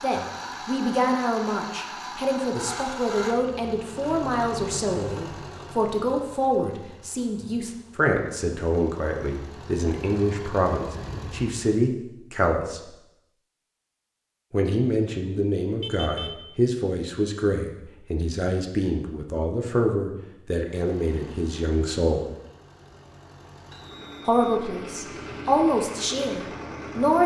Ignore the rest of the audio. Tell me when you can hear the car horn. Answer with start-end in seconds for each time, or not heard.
15.8-16.4.